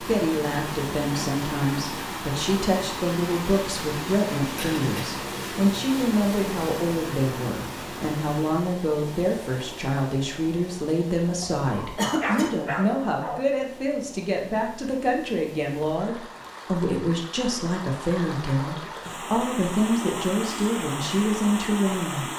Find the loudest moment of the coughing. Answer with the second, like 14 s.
12 s.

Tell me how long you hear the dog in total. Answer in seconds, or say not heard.
2 s.